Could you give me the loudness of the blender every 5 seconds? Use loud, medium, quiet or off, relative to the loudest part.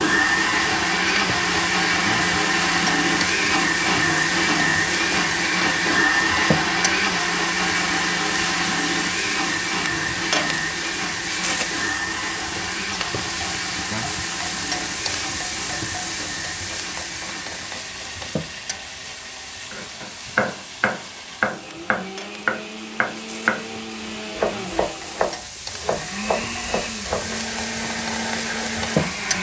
loud, loud, medium, quiet, quiet, medium.